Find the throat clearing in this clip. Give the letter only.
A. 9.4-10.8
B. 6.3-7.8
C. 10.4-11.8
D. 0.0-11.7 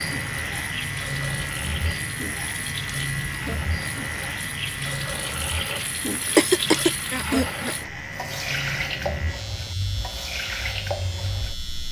B.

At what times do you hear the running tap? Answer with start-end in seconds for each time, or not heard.
0.0-11.7.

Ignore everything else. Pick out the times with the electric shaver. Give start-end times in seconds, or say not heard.
0.0-11.8.